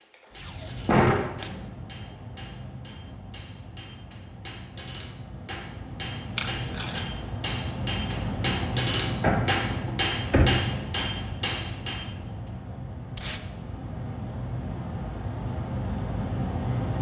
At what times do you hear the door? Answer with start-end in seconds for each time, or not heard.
0.8-1.6, 9.2-10.8.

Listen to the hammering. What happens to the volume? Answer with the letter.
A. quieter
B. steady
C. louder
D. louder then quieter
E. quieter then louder
C.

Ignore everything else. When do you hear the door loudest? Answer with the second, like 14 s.
1 s.